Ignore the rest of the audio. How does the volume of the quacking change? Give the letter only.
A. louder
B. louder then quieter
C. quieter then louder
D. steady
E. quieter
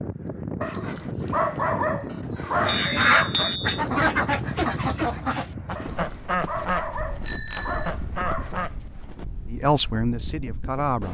E.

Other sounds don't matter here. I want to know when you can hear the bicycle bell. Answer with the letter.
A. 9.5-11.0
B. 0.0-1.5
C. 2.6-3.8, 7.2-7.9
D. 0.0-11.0
C.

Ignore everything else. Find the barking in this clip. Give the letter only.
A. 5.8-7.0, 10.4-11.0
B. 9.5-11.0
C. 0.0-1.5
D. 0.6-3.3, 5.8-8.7
D.